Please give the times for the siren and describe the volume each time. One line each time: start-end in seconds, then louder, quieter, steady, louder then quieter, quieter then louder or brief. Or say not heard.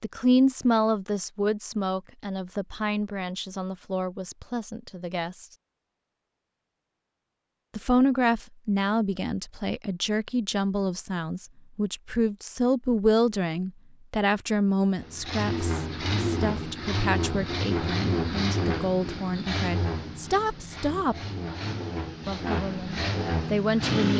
not heard.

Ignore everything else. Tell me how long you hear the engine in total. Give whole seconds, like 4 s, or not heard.
9 s.